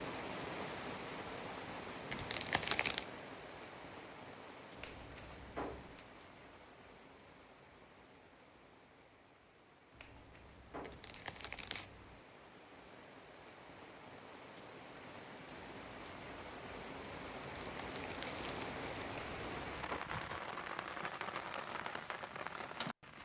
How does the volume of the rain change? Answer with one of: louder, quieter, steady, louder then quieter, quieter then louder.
quieter then louder.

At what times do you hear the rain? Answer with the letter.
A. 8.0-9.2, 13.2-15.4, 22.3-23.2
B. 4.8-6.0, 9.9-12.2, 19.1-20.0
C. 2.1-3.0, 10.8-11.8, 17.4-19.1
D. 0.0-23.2
D.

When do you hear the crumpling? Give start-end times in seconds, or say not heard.
2.1-3.0, 10.8-11.8, 17.4-19.1.